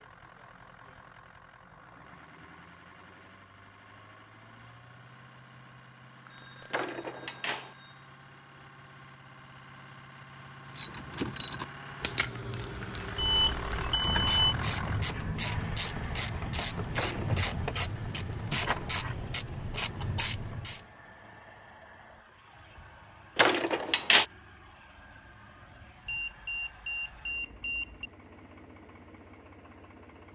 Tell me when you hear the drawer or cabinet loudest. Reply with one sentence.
The loudest moment of the drawer or cabinet is at 24 seconds.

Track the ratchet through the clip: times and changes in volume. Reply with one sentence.
You can hear the ratchet from 10.7 to 20.9 s, at a steady volume.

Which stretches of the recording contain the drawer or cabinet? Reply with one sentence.
You can hear the drawer or cabinet from 6.7 to 7.7 s, from 16.9 to 17.6 s and from 23.4 to 24.2 s.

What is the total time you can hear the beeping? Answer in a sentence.
You can hear the beeping for 5 seconds altogether.